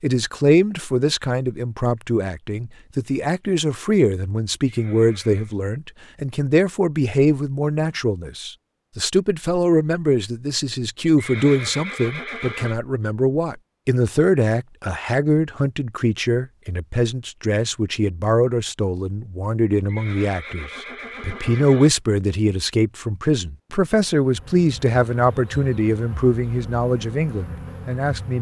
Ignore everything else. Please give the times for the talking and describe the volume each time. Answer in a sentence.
The talking can be heard from 0.0 to 28.3 s, at a steady volume.